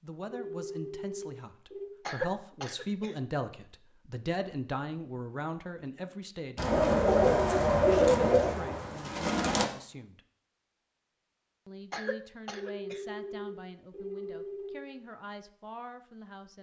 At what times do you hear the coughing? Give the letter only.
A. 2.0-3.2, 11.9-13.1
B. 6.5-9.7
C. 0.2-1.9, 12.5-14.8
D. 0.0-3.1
A.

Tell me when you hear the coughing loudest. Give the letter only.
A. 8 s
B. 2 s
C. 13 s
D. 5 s
B.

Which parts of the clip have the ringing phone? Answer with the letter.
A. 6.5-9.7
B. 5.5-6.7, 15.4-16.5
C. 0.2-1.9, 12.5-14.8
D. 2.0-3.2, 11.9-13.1
C.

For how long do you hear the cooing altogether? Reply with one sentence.
You can hear the cooing for 3 seconds altogether.